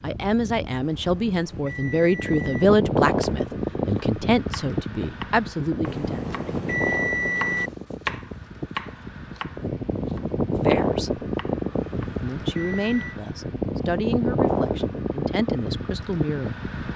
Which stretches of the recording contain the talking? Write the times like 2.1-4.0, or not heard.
0.0-6.2, 10.5-11.2, 12.2-16.9.